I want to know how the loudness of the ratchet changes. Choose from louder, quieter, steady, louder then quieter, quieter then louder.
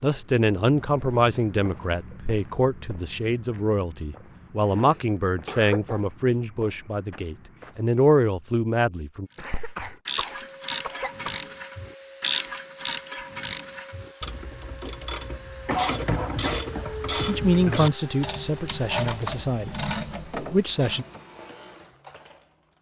steady.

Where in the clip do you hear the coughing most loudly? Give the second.
16 s.